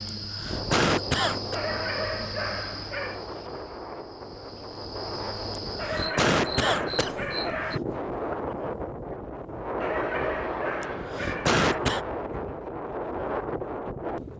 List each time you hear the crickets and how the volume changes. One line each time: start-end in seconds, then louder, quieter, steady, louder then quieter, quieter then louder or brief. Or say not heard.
0.0-7.8 quieter then louder.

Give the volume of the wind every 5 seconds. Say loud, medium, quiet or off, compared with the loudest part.
medium, loud, loud.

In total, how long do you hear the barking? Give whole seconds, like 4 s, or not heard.
6 s.